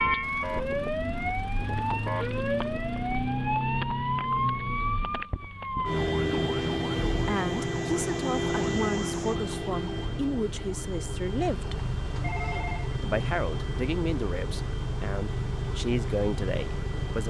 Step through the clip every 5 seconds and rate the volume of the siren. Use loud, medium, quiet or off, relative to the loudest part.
loud, loud, quiet, quiet.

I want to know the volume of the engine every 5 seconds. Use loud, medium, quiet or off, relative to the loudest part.
medium, medium, loud, loud.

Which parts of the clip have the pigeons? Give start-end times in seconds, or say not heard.
not heard.